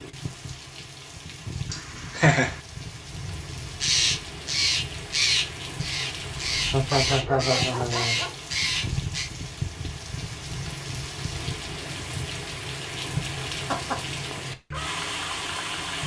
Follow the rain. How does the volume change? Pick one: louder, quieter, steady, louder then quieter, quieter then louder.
louder.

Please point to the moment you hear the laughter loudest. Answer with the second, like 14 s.
2 s.